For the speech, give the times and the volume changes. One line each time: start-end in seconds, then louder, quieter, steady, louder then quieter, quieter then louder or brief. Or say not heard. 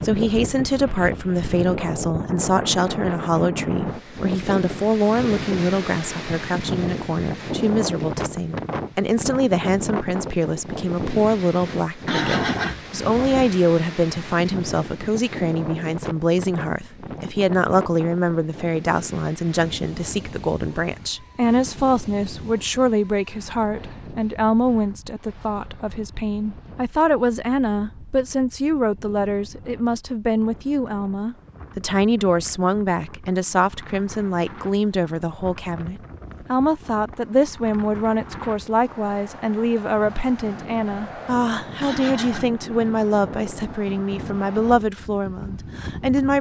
0.0-46.3 steady.